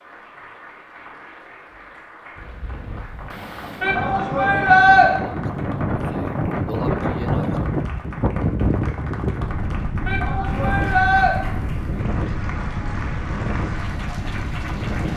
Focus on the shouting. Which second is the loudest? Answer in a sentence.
The volume of the shouting peaks at 5 seconds.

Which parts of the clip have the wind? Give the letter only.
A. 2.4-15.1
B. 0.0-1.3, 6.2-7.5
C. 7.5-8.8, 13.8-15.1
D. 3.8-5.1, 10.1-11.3
A.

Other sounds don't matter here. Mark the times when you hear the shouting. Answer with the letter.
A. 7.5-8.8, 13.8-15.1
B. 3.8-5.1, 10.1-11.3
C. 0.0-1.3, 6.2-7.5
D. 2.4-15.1
B.